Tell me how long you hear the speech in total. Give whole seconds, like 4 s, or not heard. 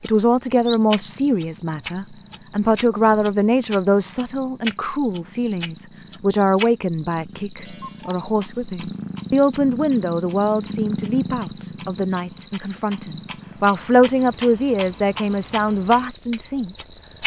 17 s.